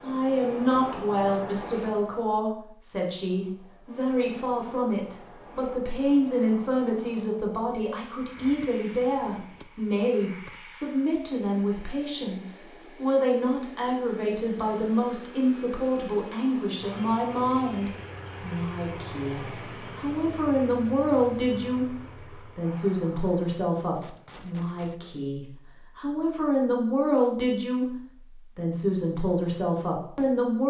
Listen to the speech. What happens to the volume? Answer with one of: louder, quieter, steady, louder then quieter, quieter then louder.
steady.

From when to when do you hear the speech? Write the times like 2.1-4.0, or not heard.
0.0-30.6.